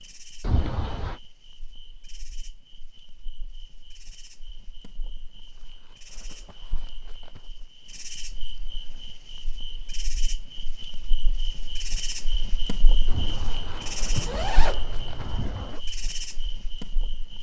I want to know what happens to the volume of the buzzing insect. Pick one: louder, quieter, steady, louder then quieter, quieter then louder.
louder.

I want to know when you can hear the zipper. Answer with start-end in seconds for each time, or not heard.
0.4-1.2, 13.1-15.8.